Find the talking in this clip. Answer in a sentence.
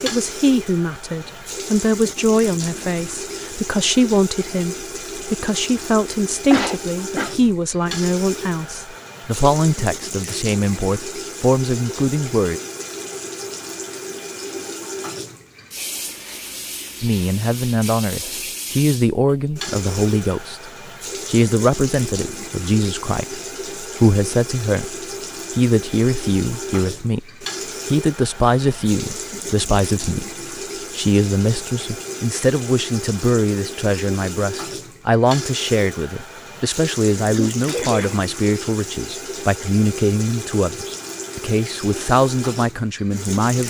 You can hear the talking from 0.0 to 12.6 s, from 17.0 to 24.9 s, from 25.6 to 30.2 s and from 30.9 to 43.6 s.